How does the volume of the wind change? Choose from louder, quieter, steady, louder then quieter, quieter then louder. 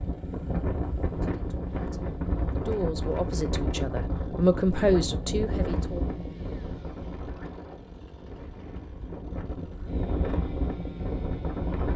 quieter then louder.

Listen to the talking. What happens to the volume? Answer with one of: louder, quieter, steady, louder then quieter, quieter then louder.
louder.